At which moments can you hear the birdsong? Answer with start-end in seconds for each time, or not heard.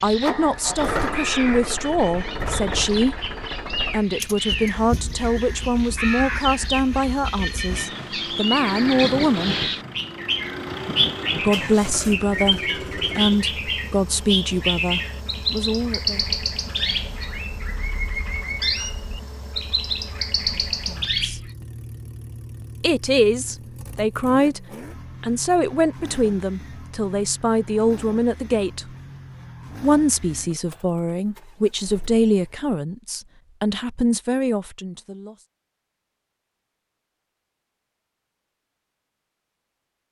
0.0-21.5.